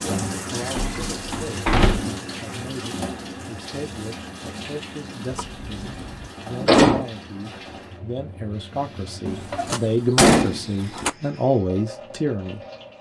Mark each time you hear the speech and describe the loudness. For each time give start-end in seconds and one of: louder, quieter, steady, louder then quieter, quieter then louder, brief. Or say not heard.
0.0-12.7 louder.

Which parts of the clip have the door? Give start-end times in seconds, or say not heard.
0.8-2.0, 5.3-7.0, 9.2-11.1.